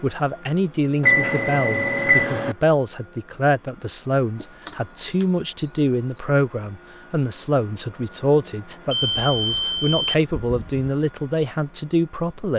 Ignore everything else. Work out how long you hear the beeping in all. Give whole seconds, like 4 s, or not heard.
5 s.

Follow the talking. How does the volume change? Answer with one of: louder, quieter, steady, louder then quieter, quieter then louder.
steady.